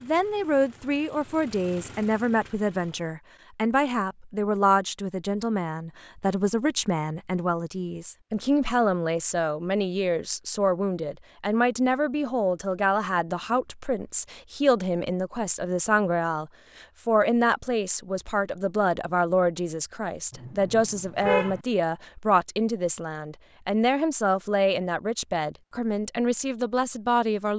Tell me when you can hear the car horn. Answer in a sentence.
The car horn can be heard from 20.3 to 21.6 s.